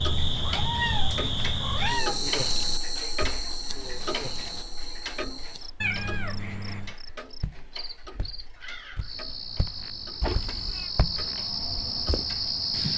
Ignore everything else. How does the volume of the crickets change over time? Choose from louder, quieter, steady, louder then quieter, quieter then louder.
quieter then louder.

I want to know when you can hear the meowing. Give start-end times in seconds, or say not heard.
0.3-2.3, 5.8-7.0, 10.2-10.9.